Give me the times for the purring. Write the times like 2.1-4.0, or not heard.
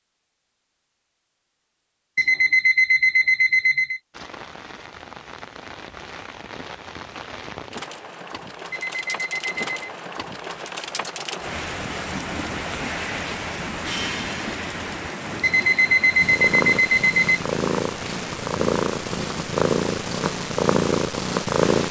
16.1-21.8.